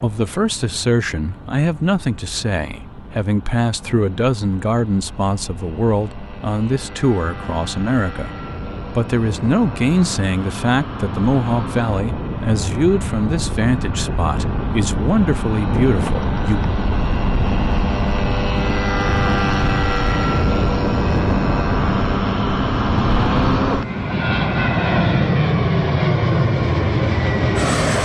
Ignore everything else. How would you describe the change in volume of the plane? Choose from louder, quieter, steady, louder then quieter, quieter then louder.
louder.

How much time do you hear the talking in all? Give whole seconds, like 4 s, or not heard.
16 s.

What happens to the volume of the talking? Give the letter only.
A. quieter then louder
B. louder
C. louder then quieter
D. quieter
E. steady
E.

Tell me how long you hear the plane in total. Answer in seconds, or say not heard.
28 s.